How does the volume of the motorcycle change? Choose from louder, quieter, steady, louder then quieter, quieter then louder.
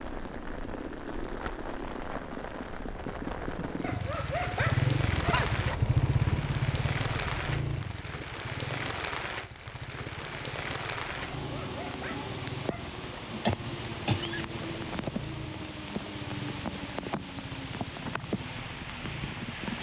louder then quieter.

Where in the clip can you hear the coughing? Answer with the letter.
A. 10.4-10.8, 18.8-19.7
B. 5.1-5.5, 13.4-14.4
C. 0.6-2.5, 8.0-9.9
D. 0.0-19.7
B.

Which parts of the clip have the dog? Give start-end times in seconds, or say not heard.
3.8-5.8, 11.2-13.2.